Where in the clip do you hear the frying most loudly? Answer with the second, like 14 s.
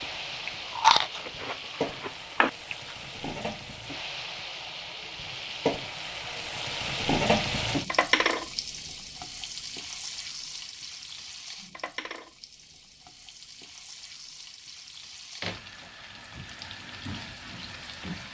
8 s.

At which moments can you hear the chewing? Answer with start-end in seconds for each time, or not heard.
0.5-3.0.